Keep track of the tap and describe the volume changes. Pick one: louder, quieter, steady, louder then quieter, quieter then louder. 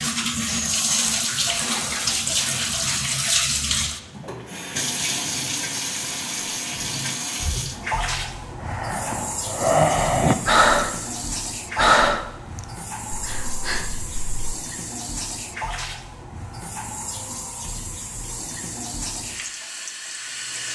quieter.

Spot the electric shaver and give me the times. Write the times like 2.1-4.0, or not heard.
not heard.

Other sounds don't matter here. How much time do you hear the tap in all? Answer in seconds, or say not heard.
21 s.